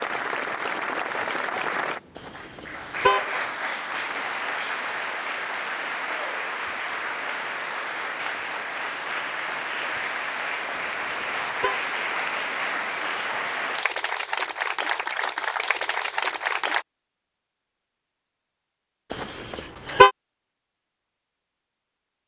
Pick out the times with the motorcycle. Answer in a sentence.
You can't hear the motorcycle here.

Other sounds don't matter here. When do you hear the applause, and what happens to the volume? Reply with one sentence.
You can hear the applause from 0.0 to 16.9 s, at a steady volume.